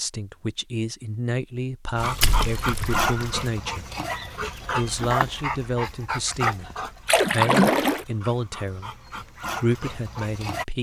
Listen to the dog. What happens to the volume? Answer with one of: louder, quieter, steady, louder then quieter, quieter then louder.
quieter then louder.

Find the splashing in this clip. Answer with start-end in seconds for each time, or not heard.
1.9-3.5, 7.0-8.1.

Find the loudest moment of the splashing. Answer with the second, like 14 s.
8 s.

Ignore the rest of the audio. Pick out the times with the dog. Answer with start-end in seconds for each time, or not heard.
1.9-10.7.